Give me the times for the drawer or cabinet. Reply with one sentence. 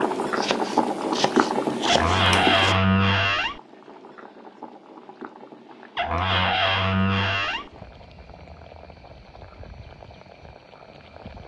You can hear the drawer or cabinet from 1.9 to 3.6 s and from 6.0 to 7.7 s.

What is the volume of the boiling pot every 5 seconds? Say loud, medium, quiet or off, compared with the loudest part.
loud, quiet, quiet.